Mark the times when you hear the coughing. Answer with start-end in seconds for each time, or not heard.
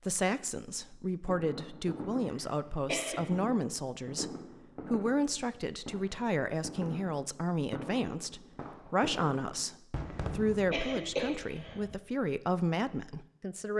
2.2-3.2, 10.1-11.8.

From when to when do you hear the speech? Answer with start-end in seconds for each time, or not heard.
0.1-13.7.